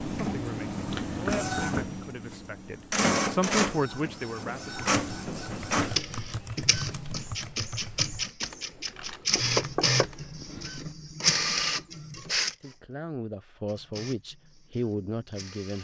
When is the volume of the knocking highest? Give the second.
10 s.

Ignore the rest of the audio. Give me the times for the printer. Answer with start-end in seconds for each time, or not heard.
0.0-15.7.